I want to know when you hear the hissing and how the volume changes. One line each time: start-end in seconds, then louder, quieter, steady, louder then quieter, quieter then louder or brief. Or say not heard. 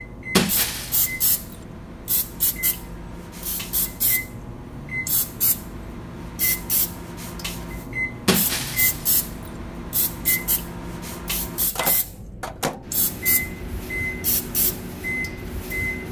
0.0-16.0 steady.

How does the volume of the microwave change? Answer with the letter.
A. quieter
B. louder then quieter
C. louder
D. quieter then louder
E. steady
C.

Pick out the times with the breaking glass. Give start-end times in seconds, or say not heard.
0.3-1.6, 8.2-9.5.